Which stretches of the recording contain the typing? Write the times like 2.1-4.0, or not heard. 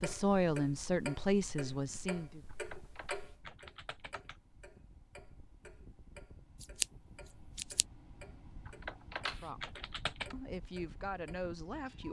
2.5-4.3, 8.7-10.3.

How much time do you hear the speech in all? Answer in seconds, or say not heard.
5 s.